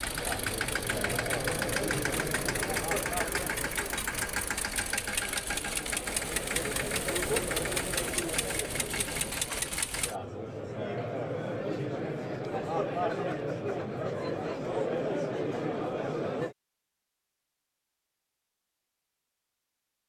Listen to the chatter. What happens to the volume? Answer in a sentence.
The loudness of the chatter goes down, then up.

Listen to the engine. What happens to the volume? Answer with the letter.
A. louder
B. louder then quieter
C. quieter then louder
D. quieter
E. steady
E.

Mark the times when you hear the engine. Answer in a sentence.
The engine can be heard from 0.0 to 10.2 s.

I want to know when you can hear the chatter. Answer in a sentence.
You can hear the chatter from 0.0 to 16.6 s.